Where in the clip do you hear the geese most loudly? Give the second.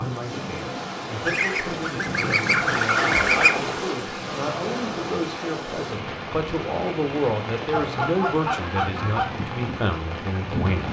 3 s.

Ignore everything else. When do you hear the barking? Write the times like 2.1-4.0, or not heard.
not heard.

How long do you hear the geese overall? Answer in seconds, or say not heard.
4 s.